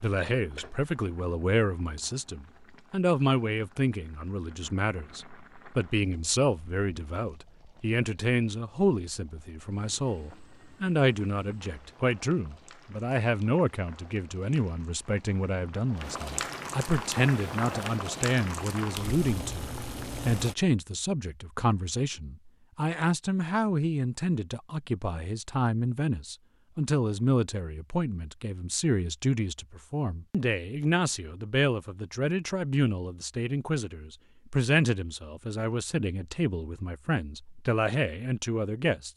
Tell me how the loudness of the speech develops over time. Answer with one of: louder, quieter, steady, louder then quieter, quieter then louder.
steady.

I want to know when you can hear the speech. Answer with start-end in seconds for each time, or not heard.
0.0-39.1.